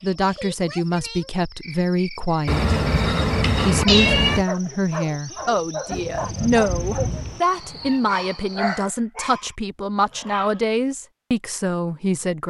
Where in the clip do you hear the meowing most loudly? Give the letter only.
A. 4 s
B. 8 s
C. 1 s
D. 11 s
A.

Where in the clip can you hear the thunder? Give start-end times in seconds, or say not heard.
5.9-7.4.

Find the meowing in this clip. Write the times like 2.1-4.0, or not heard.
2.5-4.5, 6.5-8.0.